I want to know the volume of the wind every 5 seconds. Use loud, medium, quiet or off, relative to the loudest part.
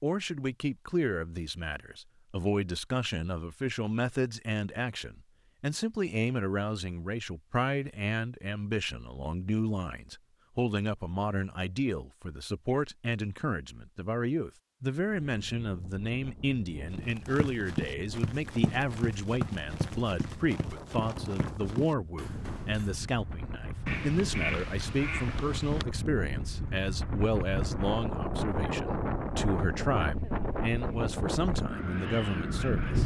off, off, off, quiet, medium, loud, loud.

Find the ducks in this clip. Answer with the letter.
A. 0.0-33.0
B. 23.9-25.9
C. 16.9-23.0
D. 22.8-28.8
B.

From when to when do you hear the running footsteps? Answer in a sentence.
The running footsteps can be heard from 16.9 to 23.0 s.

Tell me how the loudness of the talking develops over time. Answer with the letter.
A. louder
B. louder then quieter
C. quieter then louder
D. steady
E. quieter
D.